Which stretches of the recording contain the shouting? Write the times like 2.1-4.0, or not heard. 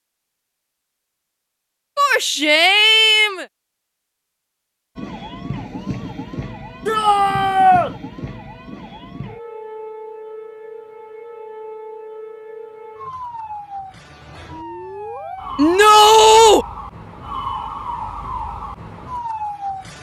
1.9-3.5, 6.8-7.9, 15.6-16.6.